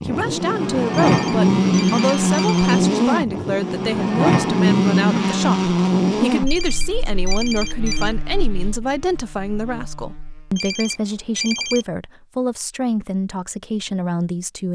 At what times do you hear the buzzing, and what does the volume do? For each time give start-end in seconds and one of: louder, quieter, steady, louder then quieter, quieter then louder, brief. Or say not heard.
0.0-10.7 quieter.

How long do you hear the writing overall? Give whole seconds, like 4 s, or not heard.
not heard.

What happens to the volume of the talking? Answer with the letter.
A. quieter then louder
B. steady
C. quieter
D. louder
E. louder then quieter
B.